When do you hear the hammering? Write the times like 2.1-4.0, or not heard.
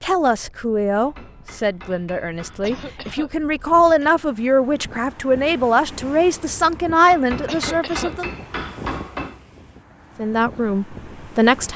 0.9-3.0, 7.1-9.4.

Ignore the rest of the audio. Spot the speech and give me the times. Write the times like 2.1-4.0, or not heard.
0.0-8.3, 10.2-11.7.